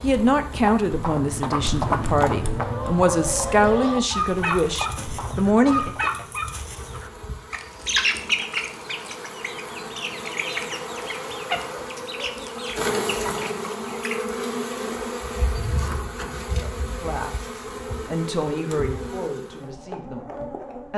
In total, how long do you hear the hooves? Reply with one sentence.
The hooves can be heard for 6 seconds in total.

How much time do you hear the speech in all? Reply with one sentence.
You can hear the speech for 10 seconds altogether.